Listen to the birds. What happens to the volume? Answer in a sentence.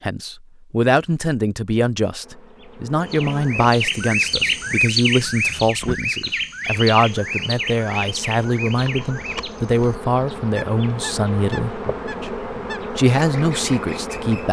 The volume of the birds goes down.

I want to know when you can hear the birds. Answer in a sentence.
You can hear the birds from 3.0 to 14.4 s.